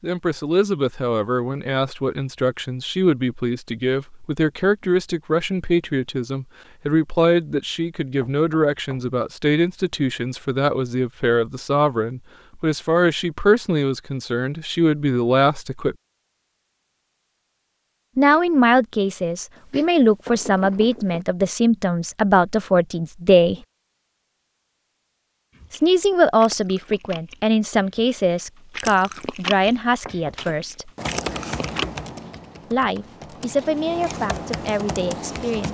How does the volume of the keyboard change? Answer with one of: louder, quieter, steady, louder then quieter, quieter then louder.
quieter then louder.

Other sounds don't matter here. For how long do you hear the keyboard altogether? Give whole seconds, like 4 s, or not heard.
5 s.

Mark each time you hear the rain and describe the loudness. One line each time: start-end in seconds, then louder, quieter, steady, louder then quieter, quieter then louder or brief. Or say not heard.
not heard.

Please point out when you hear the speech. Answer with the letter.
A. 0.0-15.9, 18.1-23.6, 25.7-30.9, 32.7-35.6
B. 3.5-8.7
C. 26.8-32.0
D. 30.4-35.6
A.